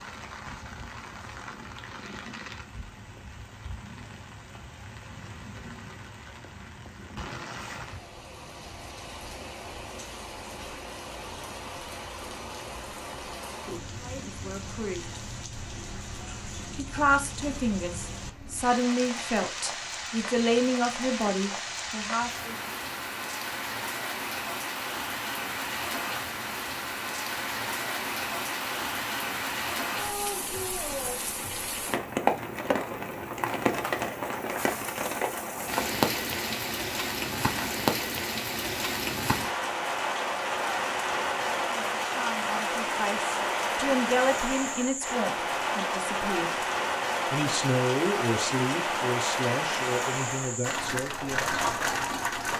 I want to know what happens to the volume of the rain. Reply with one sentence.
The loudness of the rain goes up.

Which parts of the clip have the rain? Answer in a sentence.
The rain can be heard from 0.0 to 52.5 s.